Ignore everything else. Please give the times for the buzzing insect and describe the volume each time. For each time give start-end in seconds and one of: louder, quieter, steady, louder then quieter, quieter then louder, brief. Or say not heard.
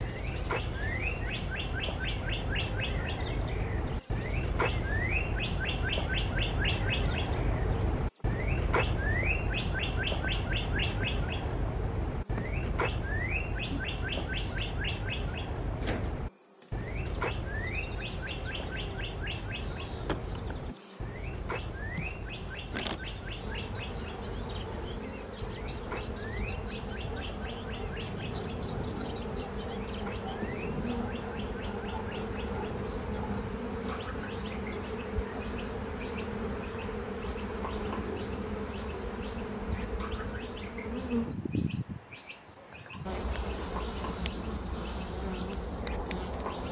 0.0-46.6 louder.